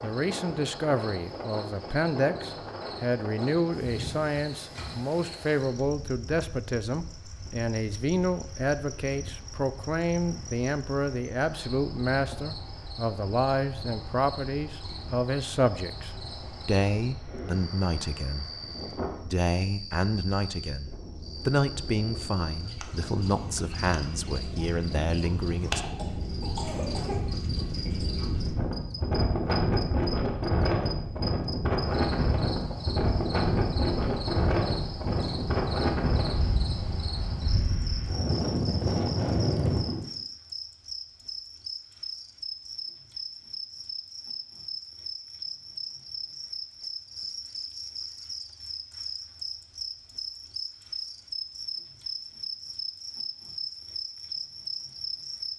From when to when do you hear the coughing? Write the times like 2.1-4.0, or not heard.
25.6-27.3.